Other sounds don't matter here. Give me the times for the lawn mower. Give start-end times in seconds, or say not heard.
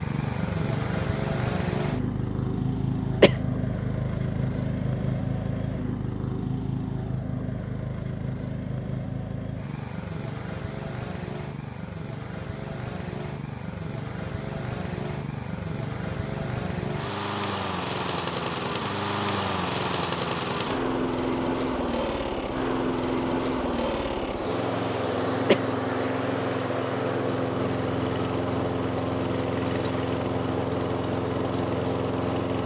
0.0-32.6.